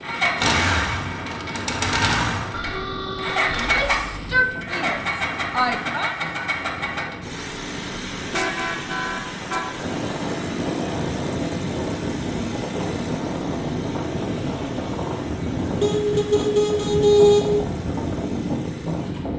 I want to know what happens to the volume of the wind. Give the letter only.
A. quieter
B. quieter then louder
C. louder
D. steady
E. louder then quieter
C.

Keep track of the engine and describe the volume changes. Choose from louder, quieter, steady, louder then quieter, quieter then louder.
quieter.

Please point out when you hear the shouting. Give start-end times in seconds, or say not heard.
3.5-6.2.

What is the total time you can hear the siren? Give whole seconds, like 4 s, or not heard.
not heard.